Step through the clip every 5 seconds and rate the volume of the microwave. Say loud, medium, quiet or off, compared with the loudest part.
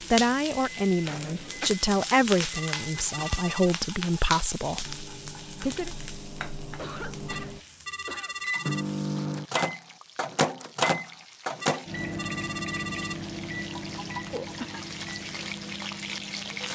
quiet, loud, loud, medium.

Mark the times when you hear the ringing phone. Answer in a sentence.
You can hear the ringing phone from 2.5 to 3.7 s, from 7.2 to 8.8 s and from 11.6 to 13.2 s.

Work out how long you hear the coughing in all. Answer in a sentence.
You can hear the coughing for 3 seconds altogether.